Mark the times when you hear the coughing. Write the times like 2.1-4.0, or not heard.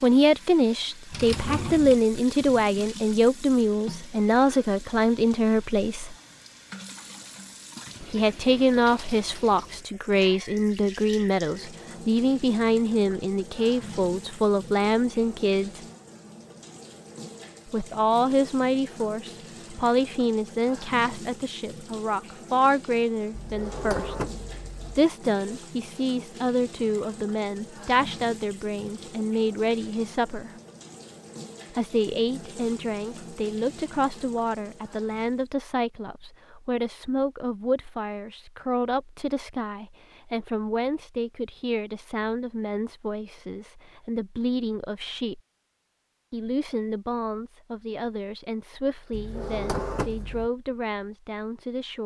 not heard.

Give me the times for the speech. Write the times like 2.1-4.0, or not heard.
0.0-6.2, 8.0-15.8, 17.6-24.1, 24.9-30.5, 31.7-45.4, 46.3-52.0.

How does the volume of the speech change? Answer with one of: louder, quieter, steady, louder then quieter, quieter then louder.
quieter.